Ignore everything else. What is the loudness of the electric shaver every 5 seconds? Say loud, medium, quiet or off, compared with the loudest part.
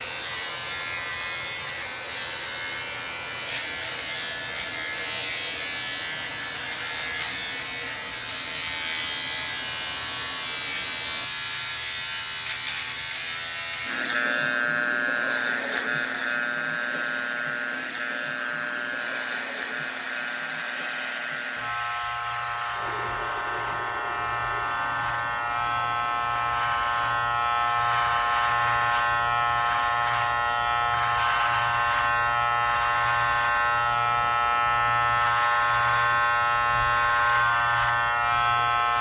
medium, medium, medium, medium, medium, loud, loud, loud.